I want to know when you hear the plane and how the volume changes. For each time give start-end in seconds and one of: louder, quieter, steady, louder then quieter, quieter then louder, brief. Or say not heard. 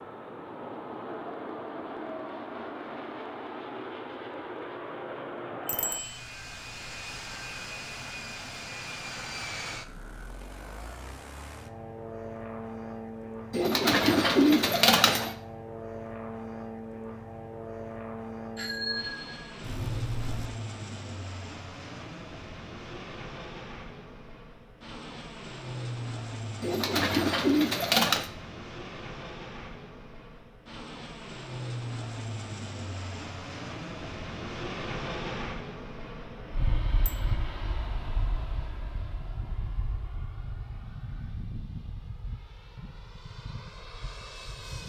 0.0-44.8 steady.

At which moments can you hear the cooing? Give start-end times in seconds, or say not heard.
13.5-15.3, 26.6-28.3.